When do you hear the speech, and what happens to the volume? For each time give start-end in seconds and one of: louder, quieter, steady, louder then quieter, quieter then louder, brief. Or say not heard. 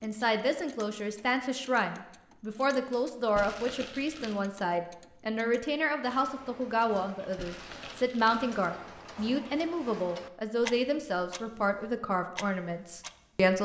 0.0-13.6 steady.